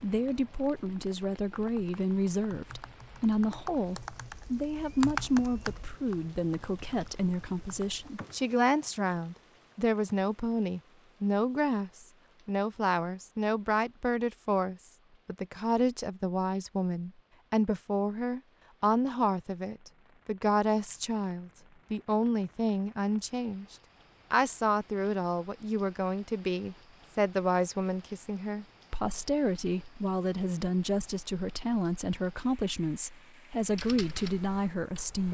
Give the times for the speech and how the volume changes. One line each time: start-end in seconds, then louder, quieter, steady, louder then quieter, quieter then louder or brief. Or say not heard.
0.0-35.2 steady.